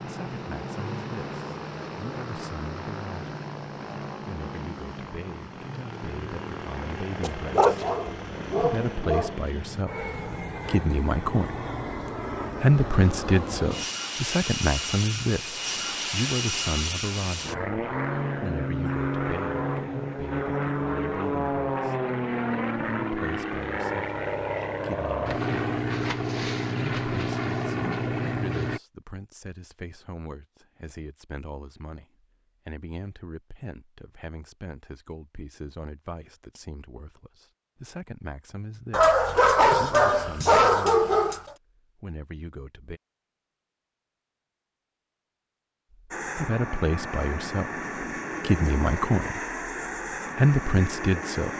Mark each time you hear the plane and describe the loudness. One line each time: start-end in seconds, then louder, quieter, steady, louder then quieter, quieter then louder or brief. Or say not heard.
0.0-28.8 louder
46.1-51.5 steady.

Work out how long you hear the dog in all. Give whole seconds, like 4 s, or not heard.
5 s.